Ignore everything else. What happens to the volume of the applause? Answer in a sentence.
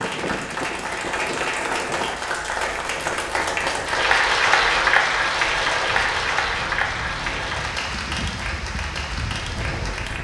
The volume of the applause goes up, then down.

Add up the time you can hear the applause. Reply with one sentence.
The applause can be heard for 10 seconds in total.